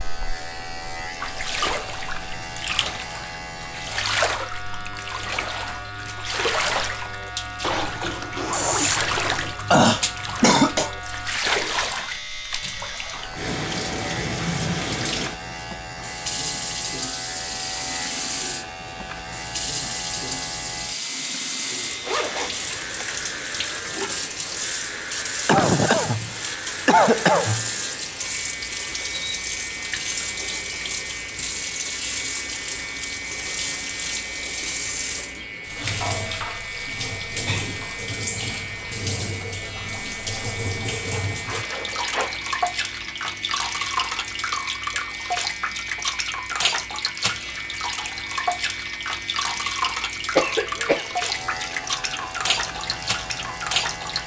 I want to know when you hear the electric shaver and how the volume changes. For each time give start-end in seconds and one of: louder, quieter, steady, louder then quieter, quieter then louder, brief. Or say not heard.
0.0-54.2 steady.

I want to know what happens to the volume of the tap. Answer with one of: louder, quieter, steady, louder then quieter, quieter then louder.
steady.